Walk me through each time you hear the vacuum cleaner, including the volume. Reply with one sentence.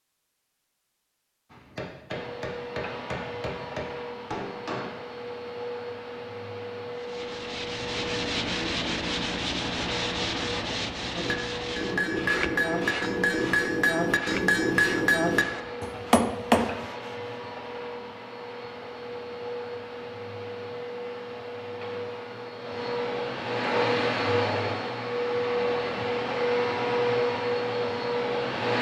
You can hear the vacuum cleaner from 2.1 to 28.7 s, getting louder.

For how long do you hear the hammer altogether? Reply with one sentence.
The hammer can be heard for 9 seconds in total.